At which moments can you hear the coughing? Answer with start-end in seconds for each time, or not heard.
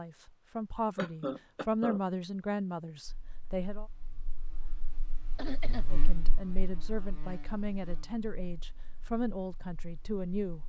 0.9-2.0, 5.3-5.9.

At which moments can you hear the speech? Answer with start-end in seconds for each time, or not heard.
0.0-3.9, 5.9-10.6.